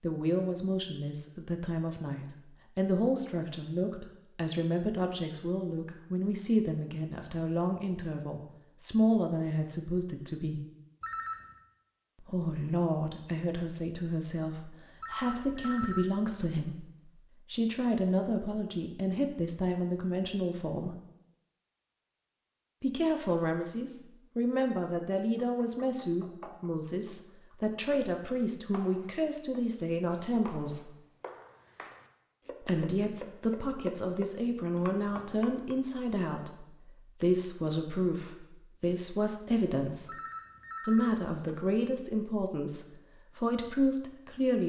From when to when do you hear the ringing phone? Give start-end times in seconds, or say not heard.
11.0-11.6, 15.0-16.4, 40.0-41.6.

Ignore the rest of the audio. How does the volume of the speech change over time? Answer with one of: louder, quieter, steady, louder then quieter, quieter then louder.
steady.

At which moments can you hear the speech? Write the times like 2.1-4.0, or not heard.
0.0-10.6, 12.2-16.9, 17.5-20.9, 22.8-30.9, 32.6-40.1, 40.8-44.6.